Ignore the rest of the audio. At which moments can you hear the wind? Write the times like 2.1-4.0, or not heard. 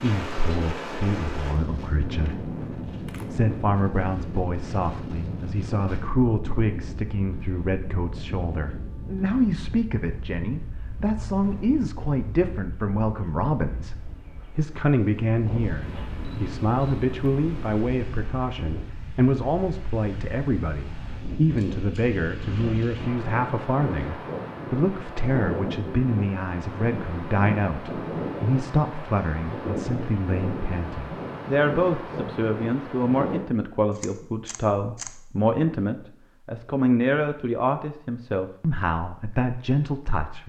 0.0-33.5.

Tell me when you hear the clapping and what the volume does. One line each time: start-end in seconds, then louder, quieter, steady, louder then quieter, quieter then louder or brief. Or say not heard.
not heard.